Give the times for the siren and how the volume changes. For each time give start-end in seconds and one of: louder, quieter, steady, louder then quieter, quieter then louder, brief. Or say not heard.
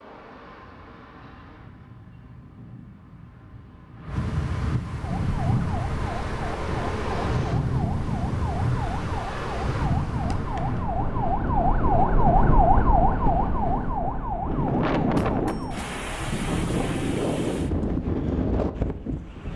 5.0-15.9 louder then quieter.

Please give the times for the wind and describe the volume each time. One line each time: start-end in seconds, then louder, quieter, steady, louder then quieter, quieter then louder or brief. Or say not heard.
0.0-19.5 louder.